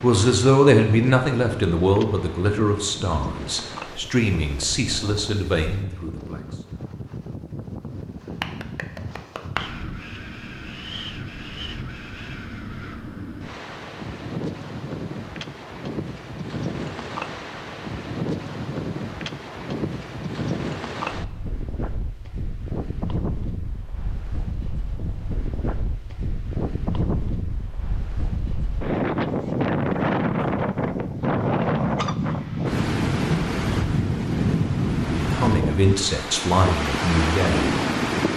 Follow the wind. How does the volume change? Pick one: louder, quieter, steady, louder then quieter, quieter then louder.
louder.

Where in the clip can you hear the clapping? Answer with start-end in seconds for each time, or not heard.
8.4-9.8.